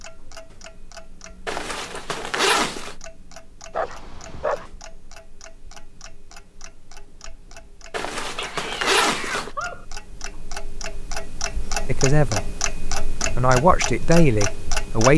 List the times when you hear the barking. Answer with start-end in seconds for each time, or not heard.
3.7-4.7, 8.2-9.8.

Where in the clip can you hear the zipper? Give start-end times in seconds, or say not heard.
1.4-3.0, 7.9-9.5.